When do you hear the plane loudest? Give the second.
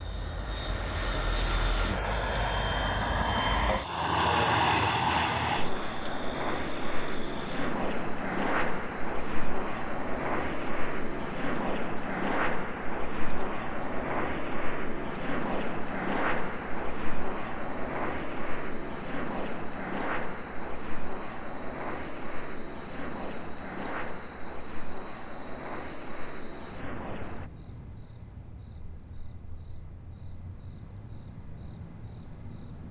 5 s.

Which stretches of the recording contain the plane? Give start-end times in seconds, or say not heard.
0.0-27.5.